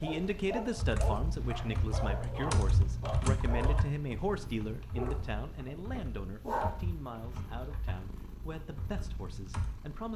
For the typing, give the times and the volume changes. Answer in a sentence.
You can hear the typing from 0.8 to 9.8 s, getting quieter.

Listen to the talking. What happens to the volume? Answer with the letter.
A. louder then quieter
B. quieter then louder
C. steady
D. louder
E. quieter
E.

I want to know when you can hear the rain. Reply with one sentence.
The rain can't be heard in this clip.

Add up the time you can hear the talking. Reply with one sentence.
The talking can be heard for 10 seconds in total.